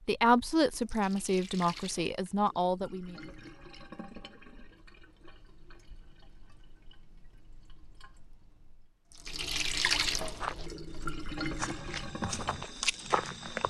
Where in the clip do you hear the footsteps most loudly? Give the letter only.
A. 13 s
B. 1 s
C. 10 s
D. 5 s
A.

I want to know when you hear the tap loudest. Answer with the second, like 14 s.
10 s.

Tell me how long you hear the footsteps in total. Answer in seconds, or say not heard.
3 s.